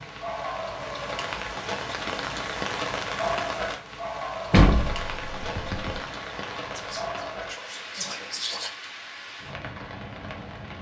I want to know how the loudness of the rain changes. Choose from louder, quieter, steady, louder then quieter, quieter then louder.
quieter.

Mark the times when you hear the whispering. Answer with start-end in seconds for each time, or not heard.
6.8-8.7.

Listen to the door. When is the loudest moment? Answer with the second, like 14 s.
5 s.